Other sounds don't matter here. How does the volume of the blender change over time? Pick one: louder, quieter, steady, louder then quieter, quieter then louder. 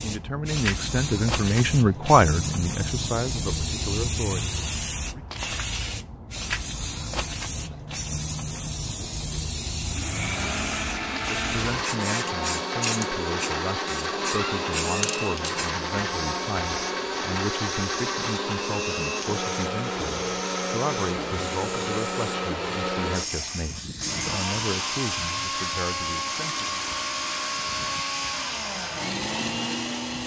steady.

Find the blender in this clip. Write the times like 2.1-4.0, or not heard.
9.8-30.2.